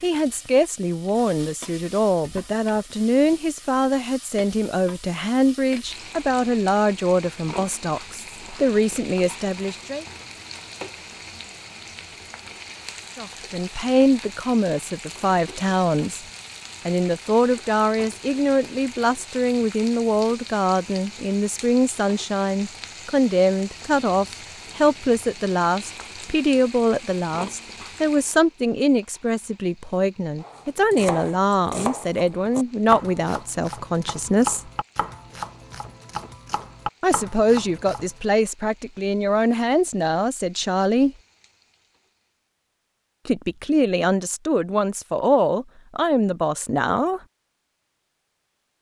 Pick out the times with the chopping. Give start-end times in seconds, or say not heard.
30.4-38.1.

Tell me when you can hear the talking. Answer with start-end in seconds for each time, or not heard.
0.0-10.1, 13.2-16.2, 16.9-34.7, 37.0-41.1, 43.2-47.2.